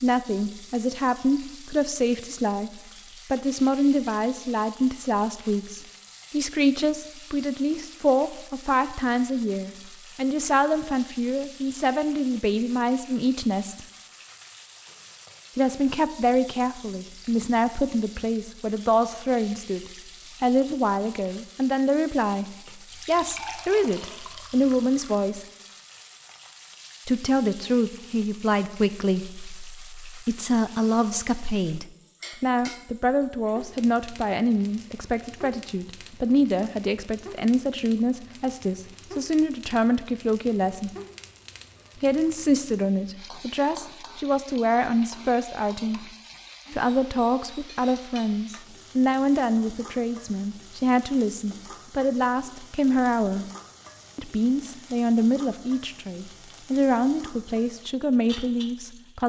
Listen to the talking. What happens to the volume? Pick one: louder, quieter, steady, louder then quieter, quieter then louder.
steady.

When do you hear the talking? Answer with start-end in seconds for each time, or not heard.
0.0-13.8, 15.6-25.4, 27.1-40.9, 42.0-46.1, 46.7-53.5, 54.1-59.2.